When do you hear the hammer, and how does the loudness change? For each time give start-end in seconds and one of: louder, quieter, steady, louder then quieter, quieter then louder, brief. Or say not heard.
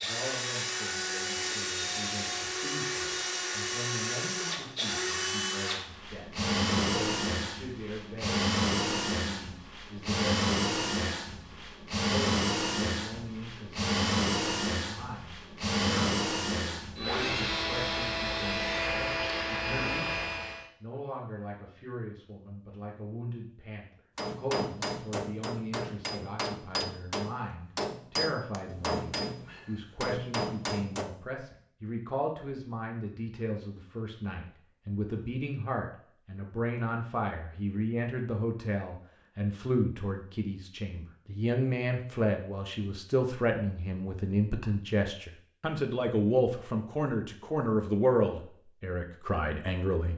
24.1-31.1 steady.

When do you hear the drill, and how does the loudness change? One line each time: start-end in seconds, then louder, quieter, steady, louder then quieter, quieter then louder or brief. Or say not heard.
0.0-20.6 steady.